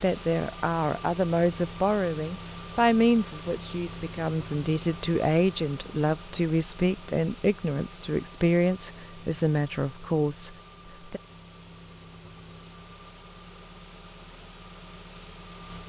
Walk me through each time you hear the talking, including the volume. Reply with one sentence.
You can hear the talking from 0.0 to 11.2 s, at a steady volume.